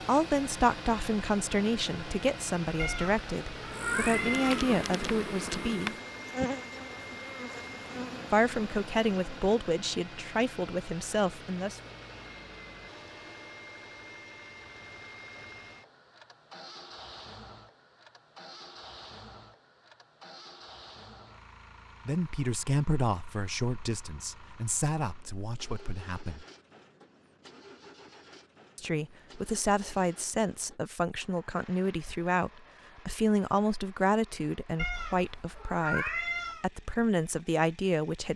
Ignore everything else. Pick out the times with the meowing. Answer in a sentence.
You can hear the meowing from 2.8 to 4.7 s and from 34.8 to 36.6 s.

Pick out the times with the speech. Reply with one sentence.
The speech can be heard from 0.1 to 6.0 s, from 8.3 to 11.8 s, from 22.1 to 26.4 s and from 28.8 to 38.3 s.